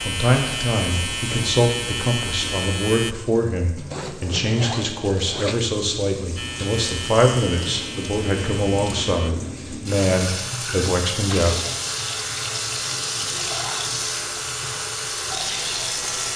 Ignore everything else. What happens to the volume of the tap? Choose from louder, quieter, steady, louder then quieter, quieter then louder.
louder.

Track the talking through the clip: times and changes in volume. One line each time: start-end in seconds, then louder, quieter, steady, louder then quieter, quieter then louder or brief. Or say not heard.
0.0-11.7 steady.